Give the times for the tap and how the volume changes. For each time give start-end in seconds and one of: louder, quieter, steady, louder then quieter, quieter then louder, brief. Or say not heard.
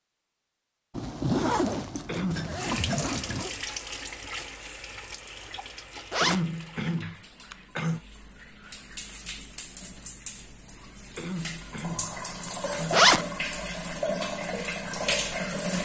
2.5-15.7 quieter then louder.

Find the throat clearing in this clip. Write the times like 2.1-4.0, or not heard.
2.0-2.6, 6.2-8.0, 11.2-13.1.